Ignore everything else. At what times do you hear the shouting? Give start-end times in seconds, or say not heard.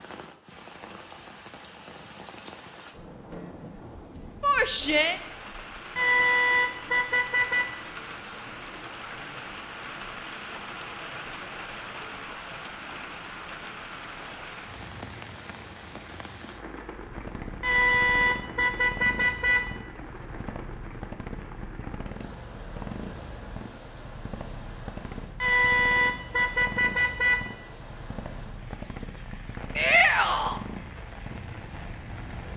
4.4-5.2, 29.8-30.6.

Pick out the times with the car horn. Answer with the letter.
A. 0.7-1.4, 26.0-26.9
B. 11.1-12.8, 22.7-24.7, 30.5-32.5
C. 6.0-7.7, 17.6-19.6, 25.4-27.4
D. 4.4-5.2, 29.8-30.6
C.